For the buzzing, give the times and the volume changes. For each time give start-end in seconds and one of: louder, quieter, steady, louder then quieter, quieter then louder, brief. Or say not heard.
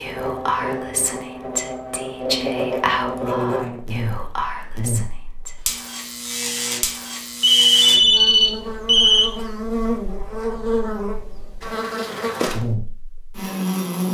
0.0-14.0 steady.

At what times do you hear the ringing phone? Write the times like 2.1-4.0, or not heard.
7.4-9.3.